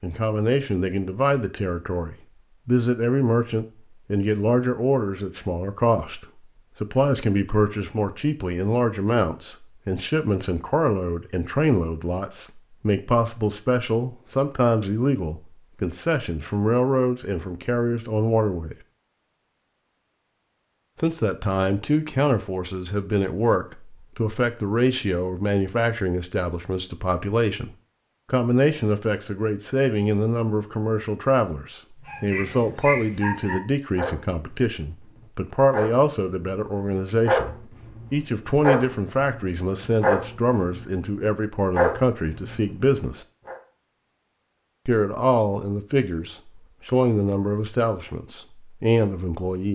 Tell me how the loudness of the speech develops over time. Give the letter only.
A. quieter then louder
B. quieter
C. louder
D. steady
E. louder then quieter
D.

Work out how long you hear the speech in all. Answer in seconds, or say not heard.
46 s.